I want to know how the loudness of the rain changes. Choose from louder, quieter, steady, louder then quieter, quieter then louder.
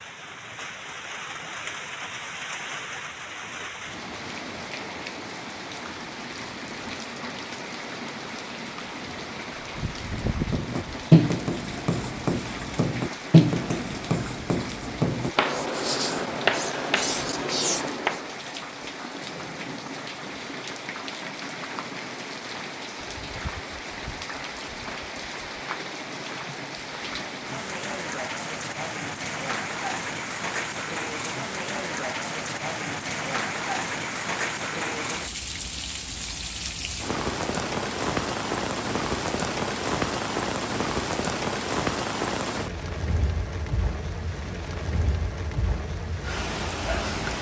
louder.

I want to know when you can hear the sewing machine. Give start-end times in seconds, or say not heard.
not heard.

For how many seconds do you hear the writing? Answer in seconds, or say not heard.
8 s.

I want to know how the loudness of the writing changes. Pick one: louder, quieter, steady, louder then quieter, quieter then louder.
quieter.